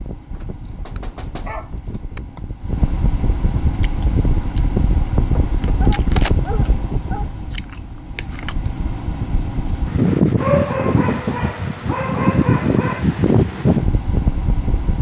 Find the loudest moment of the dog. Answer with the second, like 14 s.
11 s.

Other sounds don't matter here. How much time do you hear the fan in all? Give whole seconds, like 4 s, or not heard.
15 s.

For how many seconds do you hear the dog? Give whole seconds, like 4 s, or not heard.
6 s.